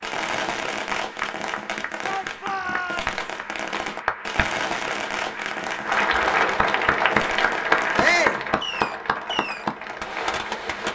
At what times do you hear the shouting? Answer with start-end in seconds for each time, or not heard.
2.0-3.1, 8.0-8.4.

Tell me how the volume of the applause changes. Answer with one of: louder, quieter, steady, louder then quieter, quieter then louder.
louder then quieter.